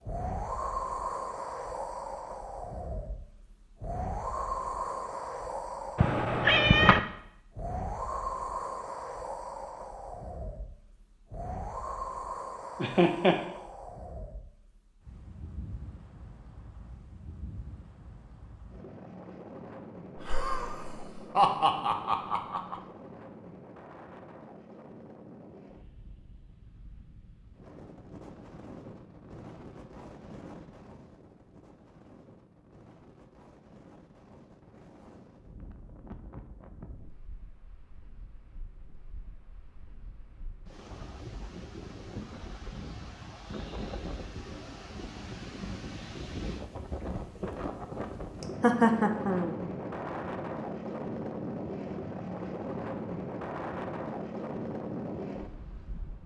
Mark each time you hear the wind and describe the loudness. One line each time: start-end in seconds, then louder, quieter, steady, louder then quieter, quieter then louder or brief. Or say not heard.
0.0-56.2 quieter then louder.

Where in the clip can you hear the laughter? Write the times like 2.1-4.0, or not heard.
12.8-13.4, 20.1-22.8, 48.4-49.5.